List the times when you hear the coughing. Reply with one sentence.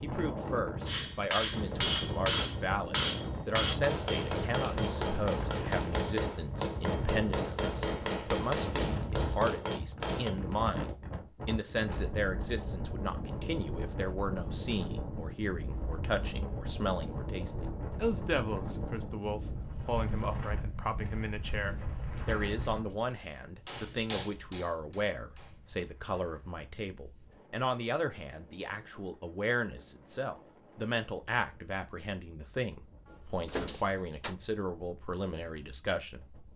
The coughing can't be heard in this clip.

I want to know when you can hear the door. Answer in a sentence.
The door can be heard from 33.0 to 34.4 s.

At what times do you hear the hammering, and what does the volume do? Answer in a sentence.
The hammering can be heard from 0.8 to 10.3 s, at a steady volume; and briefly from 23.6 to 25.9 s.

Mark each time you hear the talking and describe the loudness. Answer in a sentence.
You can hear the talking from 0.0 to 36.4 s, at a steady volume.